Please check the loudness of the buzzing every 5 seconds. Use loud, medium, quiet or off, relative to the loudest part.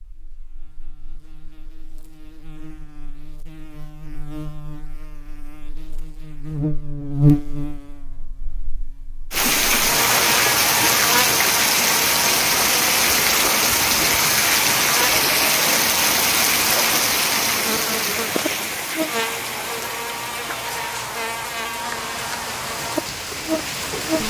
quiet, loud, loud, loud, loud.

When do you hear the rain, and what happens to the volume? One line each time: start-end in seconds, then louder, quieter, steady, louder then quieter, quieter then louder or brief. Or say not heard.
9.3-24.2 quieter.